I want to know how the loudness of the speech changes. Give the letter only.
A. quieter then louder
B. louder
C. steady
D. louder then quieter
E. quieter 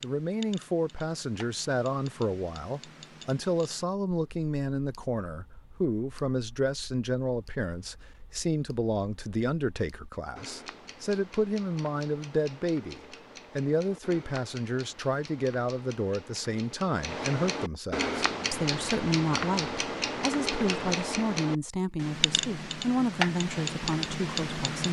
C.